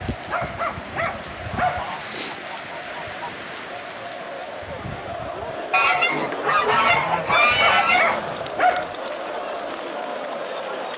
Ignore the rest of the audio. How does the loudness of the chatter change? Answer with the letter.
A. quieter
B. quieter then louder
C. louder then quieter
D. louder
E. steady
D.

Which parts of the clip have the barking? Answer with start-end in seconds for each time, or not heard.
0.2-1.9, 7.2-8.9.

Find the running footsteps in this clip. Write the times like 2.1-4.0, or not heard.
not heard.